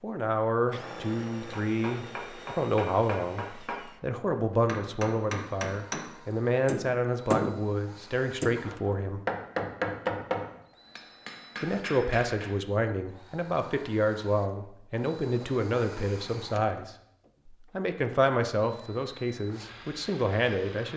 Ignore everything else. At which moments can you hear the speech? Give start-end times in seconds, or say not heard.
0.0-9.2, 11.6-20.9.